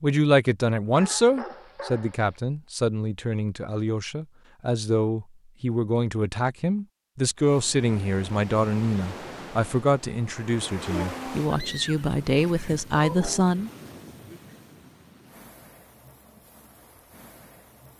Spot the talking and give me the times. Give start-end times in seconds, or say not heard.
0.0-13.7.